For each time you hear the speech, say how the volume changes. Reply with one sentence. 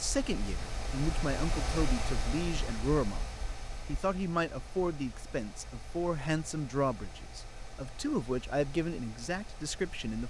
You can hear the speech from 0.0 to 10.2 s, at a steady volume.